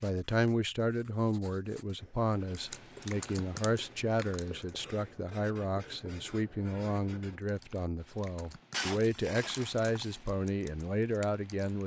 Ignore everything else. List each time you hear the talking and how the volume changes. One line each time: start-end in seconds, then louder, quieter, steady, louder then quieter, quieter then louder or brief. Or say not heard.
0.0-11.8 steady.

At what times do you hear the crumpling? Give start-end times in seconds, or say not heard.
8.7-10.2.